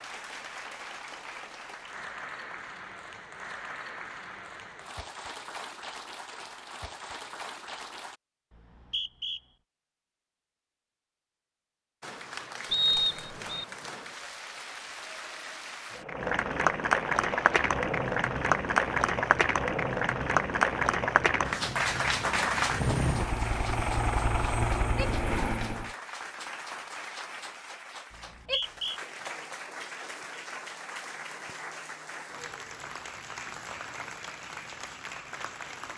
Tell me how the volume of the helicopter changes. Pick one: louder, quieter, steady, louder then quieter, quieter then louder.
louder.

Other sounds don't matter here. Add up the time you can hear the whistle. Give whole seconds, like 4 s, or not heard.
3 s.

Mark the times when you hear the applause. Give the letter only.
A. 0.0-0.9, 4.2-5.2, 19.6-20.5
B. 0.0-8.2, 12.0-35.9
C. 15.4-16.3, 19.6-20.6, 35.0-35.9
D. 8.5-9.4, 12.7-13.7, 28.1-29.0
B.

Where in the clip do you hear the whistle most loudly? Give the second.
13 s.